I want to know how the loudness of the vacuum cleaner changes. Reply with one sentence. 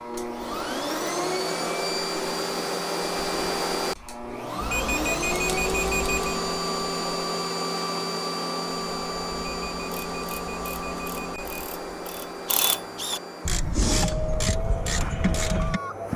The volume of the vacuum cleaner goes down.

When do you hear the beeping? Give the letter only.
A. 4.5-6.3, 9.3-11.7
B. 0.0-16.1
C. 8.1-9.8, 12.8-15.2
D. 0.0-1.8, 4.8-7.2
A.